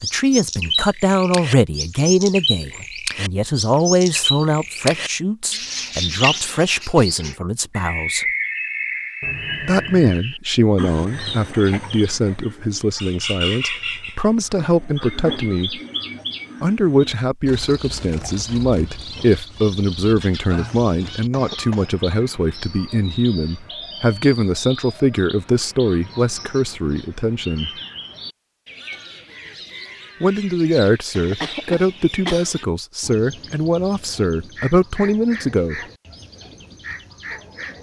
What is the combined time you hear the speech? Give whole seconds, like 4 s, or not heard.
31 s.